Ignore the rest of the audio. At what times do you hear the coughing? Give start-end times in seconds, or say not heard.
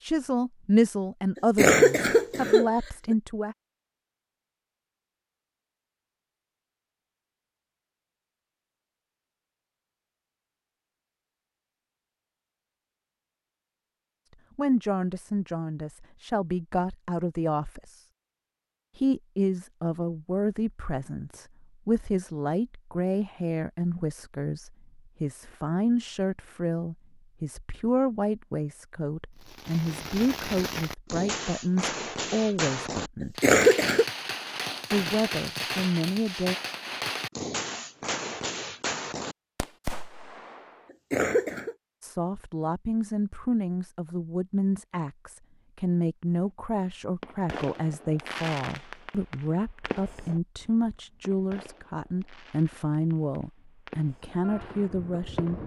1.6-3.1, 33.4-34.0, 41.1-41.8.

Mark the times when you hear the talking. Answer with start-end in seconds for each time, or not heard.
0.1-3.5, 14.6-18.0, 18.9-33.4, 34.9-36.5, 42.0-55.6.